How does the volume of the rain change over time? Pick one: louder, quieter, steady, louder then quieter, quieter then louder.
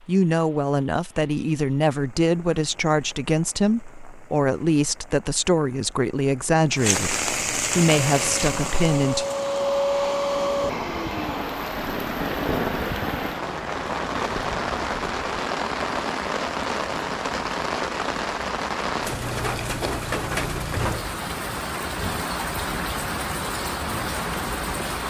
louder.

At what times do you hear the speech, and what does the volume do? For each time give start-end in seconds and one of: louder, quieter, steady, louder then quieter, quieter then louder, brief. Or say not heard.
0.1-9.2 steady.